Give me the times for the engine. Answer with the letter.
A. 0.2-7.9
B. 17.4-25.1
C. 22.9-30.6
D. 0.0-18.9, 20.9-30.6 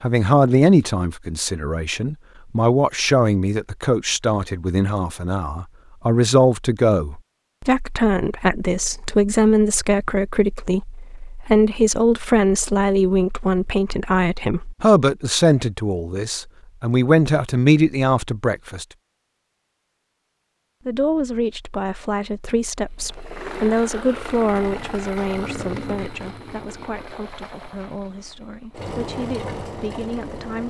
C.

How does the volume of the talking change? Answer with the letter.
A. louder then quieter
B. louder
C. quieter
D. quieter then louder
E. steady
C.